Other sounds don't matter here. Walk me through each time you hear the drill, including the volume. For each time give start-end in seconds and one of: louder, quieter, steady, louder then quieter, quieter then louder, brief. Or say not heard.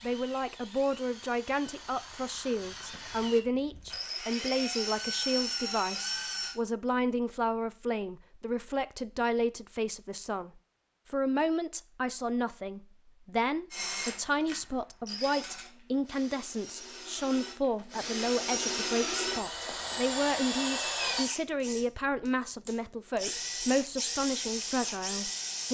0.0-6.5 louder
13.7-25.6 louder.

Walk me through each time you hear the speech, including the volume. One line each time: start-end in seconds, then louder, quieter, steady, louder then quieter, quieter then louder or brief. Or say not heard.
0.0-25.6 steady.